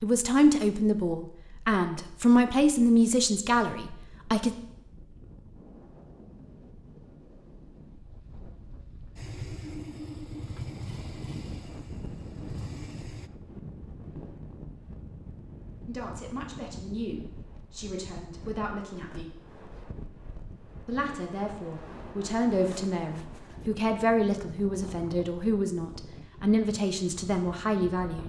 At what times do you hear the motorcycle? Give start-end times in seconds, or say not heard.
9.2-13.3.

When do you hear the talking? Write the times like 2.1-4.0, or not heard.
0.0-4.5, 15.8-19.4, 20.9-28.2.